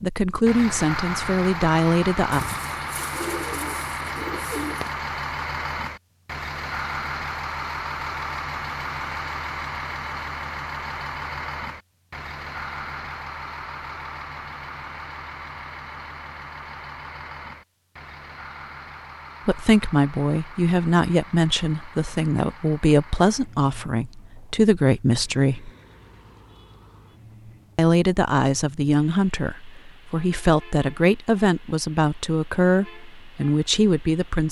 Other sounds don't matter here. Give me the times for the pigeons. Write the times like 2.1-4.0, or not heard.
2.3-5.0.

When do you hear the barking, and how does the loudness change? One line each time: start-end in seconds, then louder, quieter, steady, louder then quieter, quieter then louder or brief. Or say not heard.
not heard.